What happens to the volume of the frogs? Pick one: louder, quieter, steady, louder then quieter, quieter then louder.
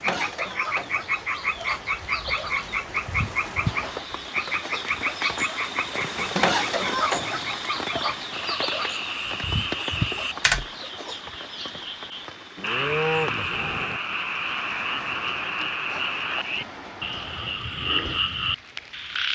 steady.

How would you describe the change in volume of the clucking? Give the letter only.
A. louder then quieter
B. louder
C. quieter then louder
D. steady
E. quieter
A.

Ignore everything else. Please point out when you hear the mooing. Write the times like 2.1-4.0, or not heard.
12.6-14.0.